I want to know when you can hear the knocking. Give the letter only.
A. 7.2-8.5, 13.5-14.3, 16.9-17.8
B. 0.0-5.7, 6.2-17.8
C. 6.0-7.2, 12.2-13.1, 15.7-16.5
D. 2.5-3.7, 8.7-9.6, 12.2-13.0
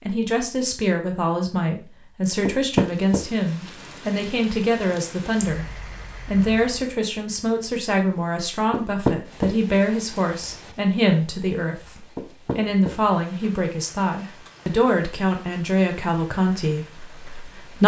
D.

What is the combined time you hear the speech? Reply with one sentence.
You can hear the speech for 17 seconds altogether.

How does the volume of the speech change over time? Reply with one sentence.
The volume of the speech stays about the same.